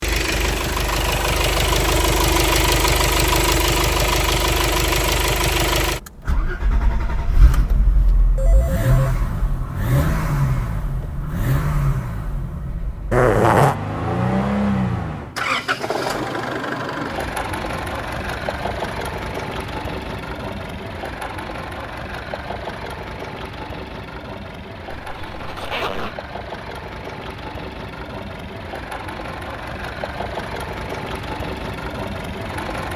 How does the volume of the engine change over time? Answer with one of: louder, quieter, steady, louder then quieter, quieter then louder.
quieter.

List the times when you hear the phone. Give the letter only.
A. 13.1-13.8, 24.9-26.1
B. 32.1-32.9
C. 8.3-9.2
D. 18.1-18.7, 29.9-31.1
C.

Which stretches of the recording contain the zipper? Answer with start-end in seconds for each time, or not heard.
13.1-13.8, 24.9-26.1.